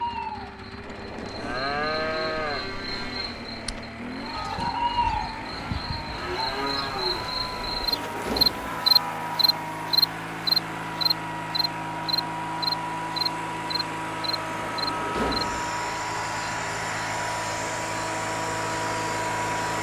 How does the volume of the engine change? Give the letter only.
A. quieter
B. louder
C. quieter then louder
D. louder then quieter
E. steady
B.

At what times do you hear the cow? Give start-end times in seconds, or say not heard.
0.8-9.7.